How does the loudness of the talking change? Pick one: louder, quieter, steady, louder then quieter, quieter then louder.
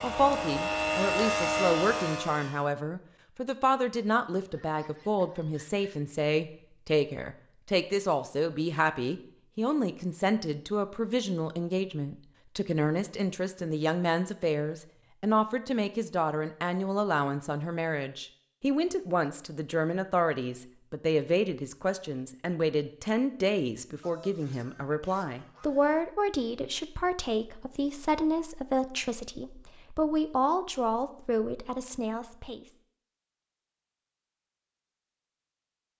steady.